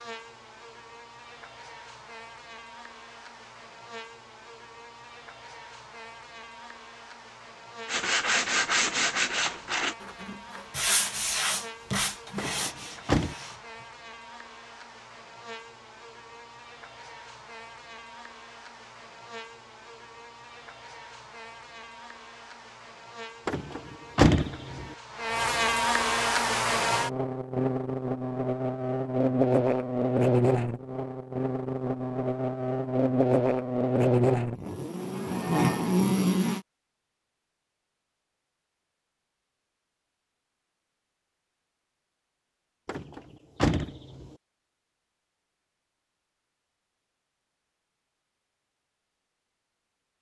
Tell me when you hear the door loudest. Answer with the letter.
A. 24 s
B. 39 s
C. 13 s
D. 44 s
A.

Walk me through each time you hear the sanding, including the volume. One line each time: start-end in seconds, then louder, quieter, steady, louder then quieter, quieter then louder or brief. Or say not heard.
7.8-13.8 quieter.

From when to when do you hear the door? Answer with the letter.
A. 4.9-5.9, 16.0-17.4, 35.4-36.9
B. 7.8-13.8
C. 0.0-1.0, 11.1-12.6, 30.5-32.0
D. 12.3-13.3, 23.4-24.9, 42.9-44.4
D.